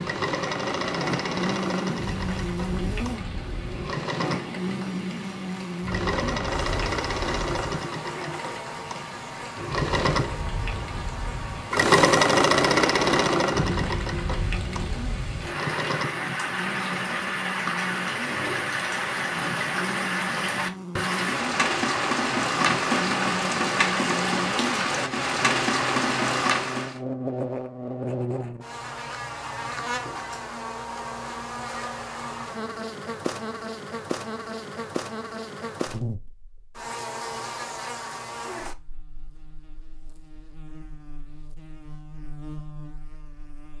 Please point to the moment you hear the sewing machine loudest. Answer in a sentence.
The loudest moment of the sewing machine is at 12 seconds.